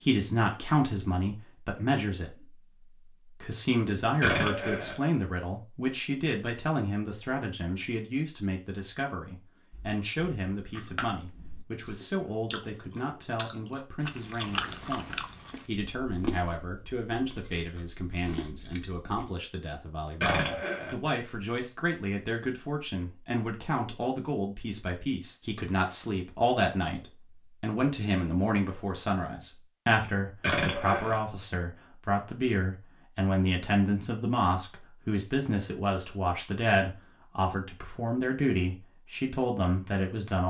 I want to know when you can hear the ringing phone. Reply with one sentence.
You can't hear the ringing phone here.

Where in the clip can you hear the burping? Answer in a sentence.
You can hear the burping from 4.2 to 5.0 s, from 20.2 to 20.9 s and from 30.4 to 31.2 s.